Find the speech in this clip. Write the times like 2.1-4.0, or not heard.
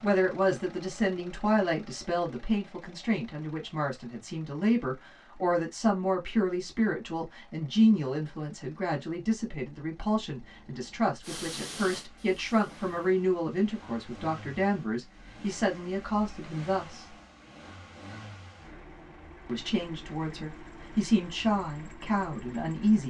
0.0-17.1, 19.4-23.0.